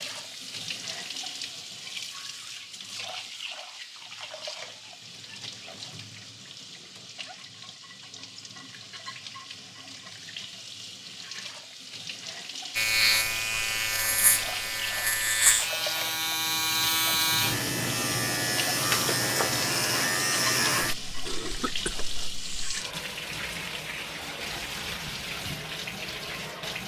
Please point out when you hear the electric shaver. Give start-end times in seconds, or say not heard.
12.8-22.8.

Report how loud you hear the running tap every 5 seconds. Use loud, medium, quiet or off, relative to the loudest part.
loud, medium, loud, loud, loud, loud.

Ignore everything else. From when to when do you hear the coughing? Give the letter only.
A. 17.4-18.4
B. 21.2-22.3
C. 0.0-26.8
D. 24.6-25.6
B.